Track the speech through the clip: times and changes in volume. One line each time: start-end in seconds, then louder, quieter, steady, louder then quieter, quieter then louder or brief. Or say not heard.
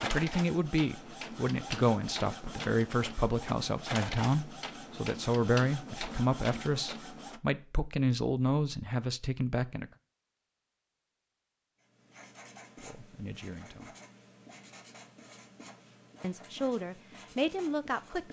0.0-9.9 steady
12.8-13.9 brief
16.2-18.2 brief.